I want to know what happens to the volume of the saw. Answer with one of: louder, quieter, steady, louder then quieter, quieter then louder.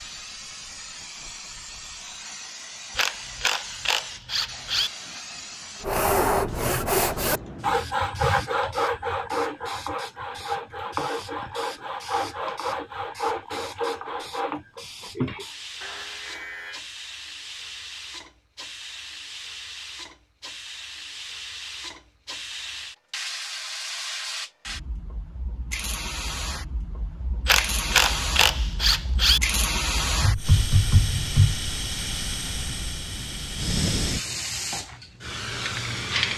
quieter.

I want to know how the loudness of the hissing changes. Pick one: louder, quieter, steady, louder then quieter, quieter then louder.
louder.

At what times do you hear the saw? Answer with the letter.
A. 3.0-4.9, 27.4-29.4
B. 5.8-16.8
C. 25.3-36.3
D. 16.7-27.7
B.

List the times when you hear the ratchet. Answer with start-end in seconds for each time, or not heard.
3.0-4.9, 27.4-29.4.